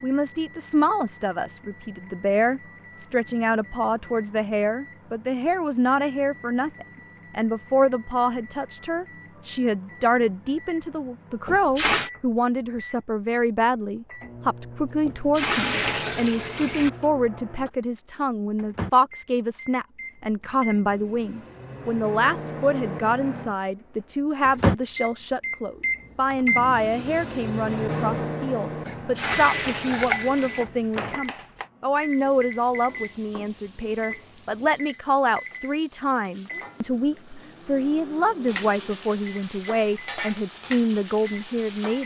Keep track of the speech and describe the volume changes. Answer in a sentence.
The loudness of the speech stays about the same.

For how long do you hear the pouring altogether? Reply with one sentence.
You can hear the pouring for 4 seconds altogether.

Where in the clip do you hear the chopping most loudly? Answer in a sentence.
The volume of the chopping peaks at 30 seconds.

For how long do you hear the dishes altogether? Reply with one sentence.
The dishes can't be heard in this clip.